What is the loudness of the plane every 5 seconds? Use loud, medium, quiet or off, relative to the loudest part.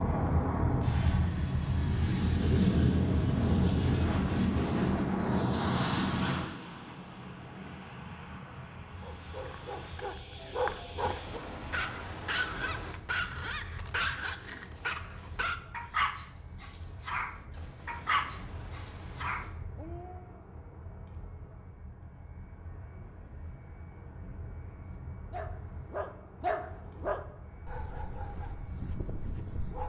loud, medium, quiet, quiet, quiet, quiet.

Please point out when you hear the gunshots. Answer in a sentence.
You can hear the gunshots from 10.9 to 12.9 s and from 17.5 to 19.5 s.